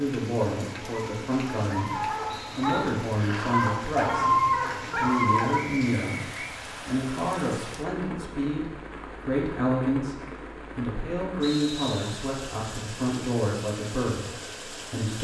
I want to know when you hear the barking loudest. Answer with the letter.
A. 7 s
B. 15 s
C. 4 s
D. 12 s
C.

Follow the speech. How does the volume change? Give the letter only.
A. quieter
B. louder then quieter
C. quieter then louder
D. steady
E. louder
D.